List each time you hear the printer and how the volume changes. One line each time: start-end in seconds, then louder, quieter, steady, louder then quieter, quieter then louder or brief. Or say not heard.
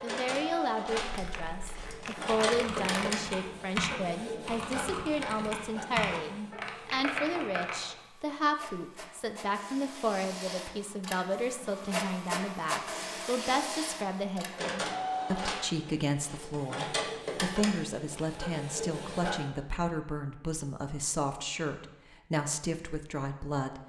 0.0-19.5 quieter then louder.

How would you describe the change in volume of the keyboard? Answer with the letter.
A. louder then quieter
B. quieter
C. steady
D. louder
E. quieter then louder
D.